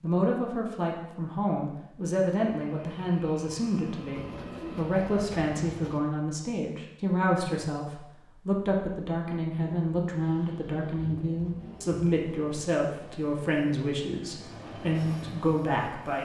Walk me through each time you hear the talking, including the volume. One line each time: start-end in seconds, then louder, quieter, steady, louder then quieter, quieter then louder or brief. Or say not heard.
0.0-16.2 steady.